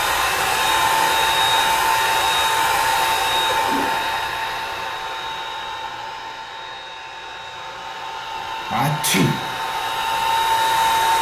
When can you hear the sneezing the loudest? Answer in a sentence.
The loudest moment of the sneezing is at 9 seconds.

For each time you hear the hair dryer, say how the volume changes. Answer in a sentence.
The hair dryer can be heard from 0.0 to 11.1 s, getting quieter then louder.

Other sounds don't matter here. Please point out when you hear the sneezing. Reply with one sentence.
You can hear the sneezing from 3.5 to 4.0 s and from 8.7 to 9.3 s.